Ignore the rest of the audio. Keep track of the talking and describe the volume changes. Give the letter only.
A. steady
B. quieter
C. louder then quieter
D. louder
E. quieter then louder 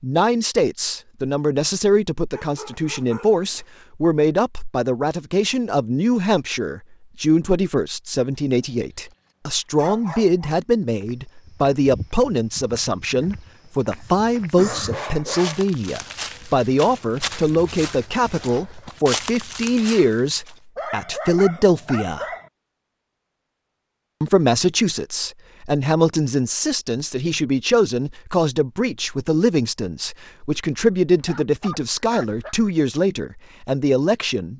A.